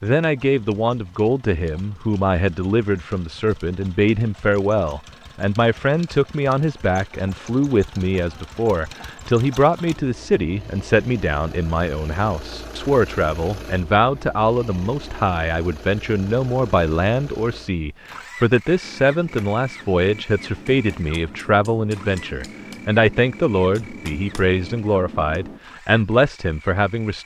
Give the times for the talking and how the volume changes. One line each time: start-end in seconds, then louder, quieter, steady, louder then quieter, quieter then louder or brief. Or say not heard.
0.0-27.2 steady.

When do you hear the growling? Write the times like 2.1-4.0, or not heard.
not heard.